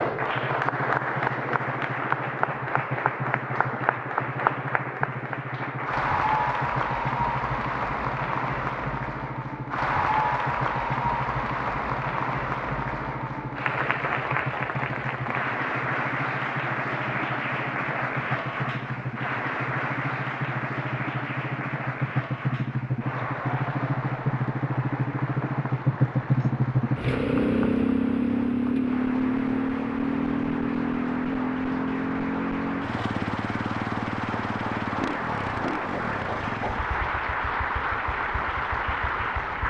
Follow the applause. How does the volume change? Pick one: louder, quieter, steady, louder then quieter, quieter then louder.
quieter then louder.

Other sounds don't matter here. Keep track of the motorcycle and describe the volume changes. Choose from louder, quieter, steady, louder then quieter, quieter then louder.
louder then quieter.